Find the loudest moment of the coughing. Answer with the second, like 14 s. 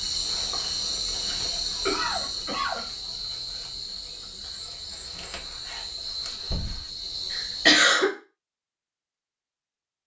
8 s.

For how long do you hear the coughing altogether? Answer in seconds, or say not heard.
2 s.